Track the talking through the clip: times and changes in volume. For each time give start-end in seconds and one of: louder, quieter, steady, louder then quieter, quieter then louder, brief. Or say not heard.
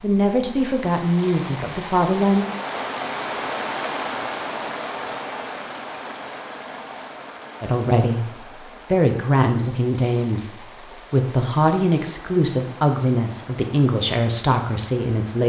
0.0-2.5 brief
7.6-15.4 steady.